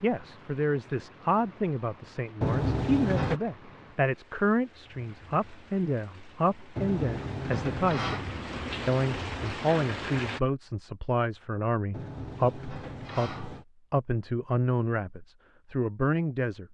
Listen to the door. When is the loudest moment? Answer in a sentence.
The loudest moment of the door is at 3 seconds.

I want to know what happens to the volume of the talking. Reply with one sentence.
The loudness of the talking stays about the same.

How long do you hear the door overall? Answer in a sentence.
The door can be heard for 4 seconds in total.